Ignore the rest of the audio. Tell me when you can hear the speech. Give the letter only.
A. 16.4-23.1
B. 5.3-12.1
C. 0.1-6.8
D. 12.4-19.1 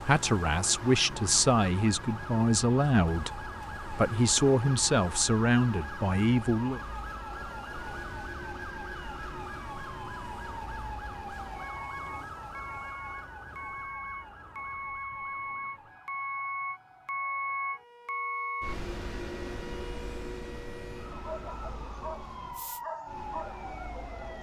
C.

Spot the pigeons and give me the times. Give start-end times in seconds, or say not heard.
not heard.